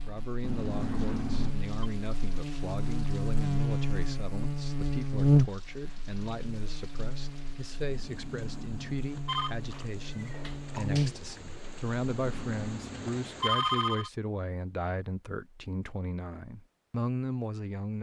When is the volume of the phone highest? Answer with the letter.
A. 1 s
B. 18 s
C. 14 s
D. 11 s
C.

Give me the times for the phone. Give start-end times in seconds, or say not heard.
0.4-1.7, 7.9-9.6, 12.2-14.1.